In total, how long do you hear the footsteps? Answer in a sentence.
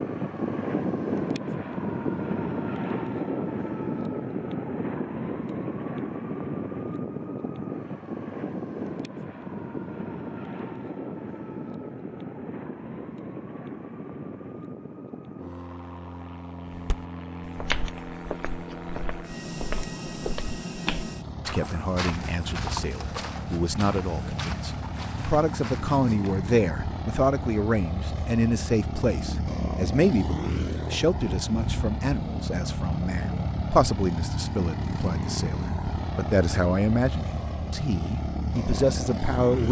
The footsteps can be heard for 10 seconds in total.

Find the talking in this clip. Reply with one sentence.
The talking can be heard from 21.4 to 39.6 s.